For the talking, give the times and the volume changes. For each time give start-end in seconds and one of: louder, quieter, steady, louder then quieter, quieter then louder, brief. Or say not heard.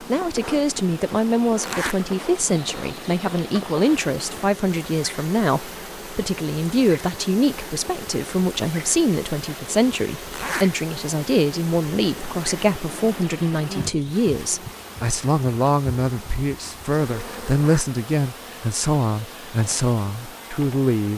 0.0-21.1 steady.